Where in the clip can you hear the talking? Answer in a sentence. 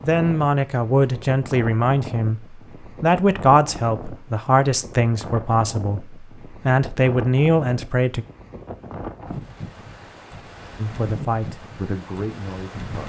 You can hear the talking from 0.0 to 8.2 s and from 10.8 to 13.0 s.